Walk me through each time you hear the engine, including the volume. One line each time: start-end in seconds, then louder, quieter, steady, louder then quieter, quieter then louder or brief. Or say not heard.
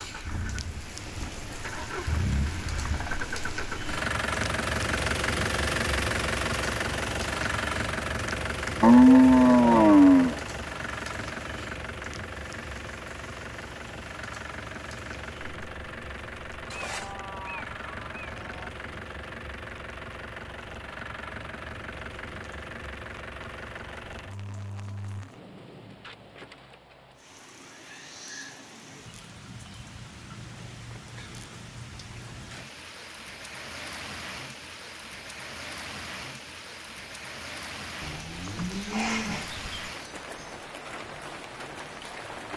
0.0-25.4 quieter.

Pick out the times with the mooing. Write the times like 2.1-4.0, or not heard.
8.8-10.4, 16.7-18.7, 38.0-39.9.